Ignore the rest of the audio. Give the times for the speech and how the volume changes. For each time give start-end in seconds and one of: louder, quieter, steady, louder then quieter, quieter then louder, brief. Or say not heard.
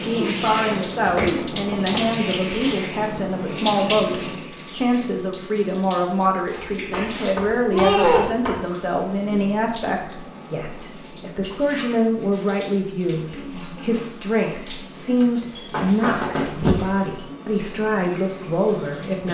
0.0-19.2 steady.